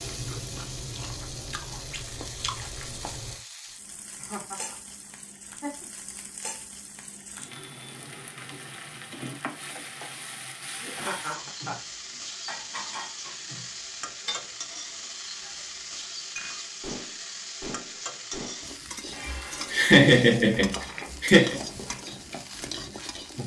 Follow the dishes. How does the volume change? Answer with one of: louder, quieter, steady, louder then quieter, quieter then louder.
steady.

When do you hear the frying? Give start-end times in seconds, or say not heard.
0.0-23.4.